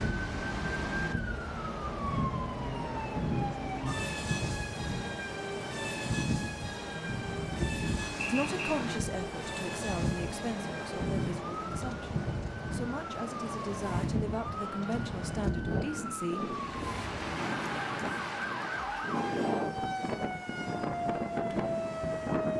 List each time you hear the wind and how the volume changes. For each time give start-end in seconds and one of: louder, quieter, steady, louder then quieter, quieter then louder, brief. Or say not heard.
0.0-22.5 steady.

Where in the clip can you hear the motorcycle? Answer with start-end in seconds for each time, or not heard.
not heard.